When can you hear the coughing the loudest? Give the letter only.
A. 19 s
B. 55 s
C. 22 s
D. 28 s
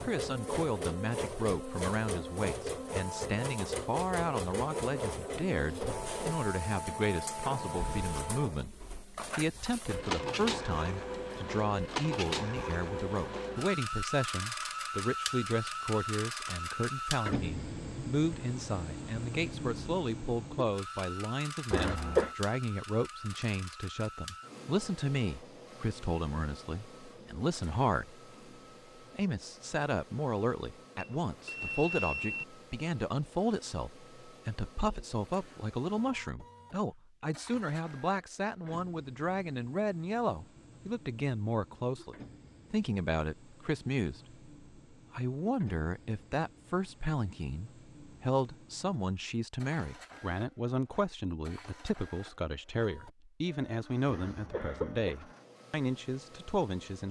C.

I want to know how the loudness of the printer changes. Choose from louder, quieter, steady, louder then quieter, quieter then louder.
quieter.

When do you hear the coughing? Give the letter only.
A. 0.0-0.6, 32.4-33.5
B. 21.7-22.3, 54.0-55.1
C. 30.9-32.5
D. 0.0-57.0
B.